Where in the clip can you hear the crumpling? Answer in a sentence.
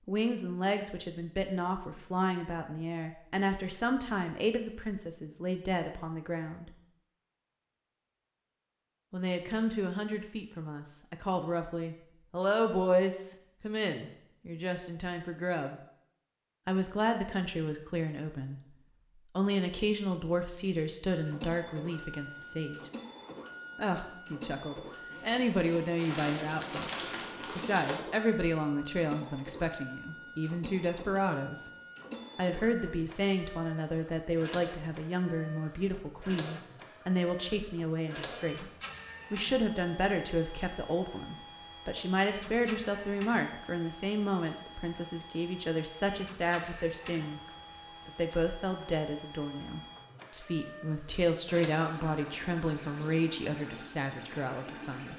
You can hear the crumpling from 25.9 to 28.0 s.